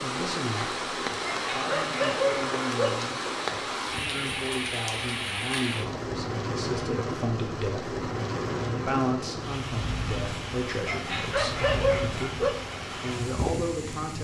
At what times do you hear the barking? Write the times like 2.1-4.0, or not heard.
1.2-3.0, 10.8-12.6.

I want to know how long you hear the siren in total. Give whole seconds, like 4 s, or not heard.
not heard.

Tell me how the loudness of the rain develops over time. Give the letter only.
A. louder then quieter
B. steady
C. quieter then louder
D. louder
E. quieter
B.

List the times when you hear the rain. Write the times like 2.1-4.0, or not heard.
0.0-14.1.